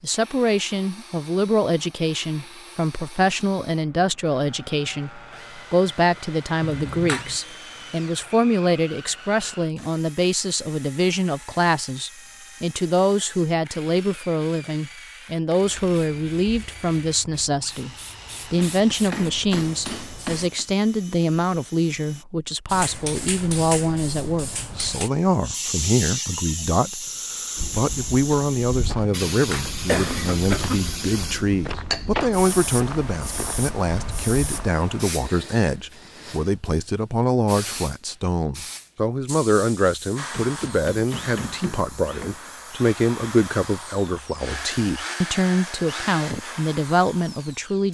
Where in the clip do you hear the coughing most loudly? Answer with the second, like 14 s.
30 s.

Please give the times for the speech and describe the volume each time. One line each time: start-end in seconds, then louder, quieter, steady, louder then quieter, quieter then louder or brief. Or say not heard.
0.0-47.8 steady.